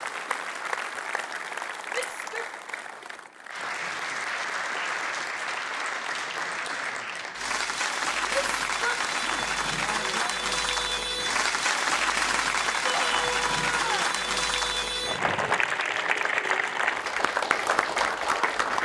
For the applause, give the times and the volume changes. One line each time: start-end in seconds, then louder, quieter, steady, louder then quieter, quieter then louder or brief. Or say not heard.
0.0-18.7 louder.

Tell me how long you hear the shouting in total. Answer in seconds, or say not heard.
4 s.